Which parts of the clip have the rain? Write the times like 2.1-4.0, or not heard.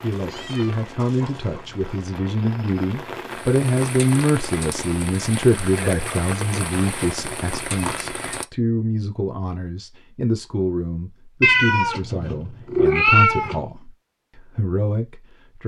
0.0-8.4.